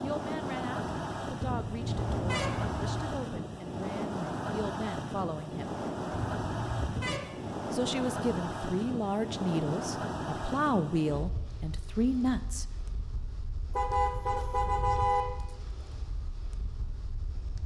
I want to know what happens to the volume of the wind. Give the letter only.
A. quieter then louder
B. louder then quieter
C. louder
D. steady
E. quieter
E.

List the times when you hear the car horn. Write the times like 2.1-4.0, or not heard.
1.4-3.0, 6.2-7.2, 13.8-15.2.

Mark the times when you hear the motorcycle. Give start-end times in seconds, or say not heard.
not heard.